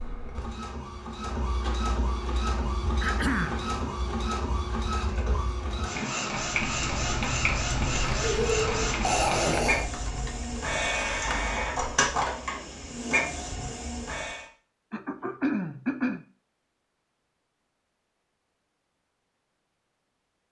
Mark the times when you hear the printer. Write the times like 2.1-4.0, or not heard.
0.0-14.4.